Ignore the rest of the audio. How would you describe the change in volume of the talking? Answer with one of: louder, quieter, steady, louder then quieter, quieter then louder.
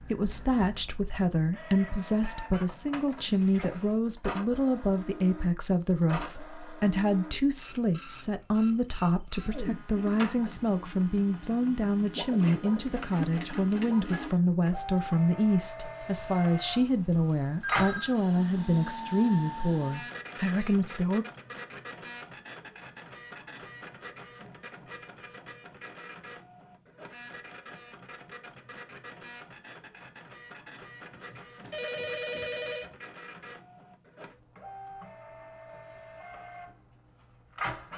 steady.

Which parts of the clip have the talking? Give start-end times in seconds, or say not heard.
0.0-21.2.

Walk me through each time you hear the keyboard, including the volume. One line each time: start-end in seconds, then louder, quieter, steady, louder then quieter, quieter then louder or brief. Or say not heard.
not heard.